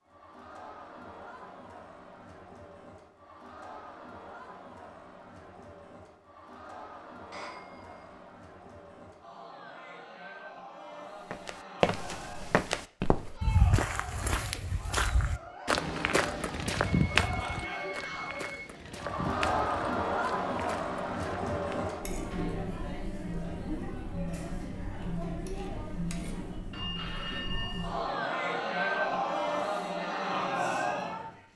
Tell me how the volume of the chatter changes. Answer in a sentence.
The loudness of the chatter goes up.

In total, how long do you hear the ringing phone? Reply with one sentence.
You can hear the ringing phone for 4 seconds altogether.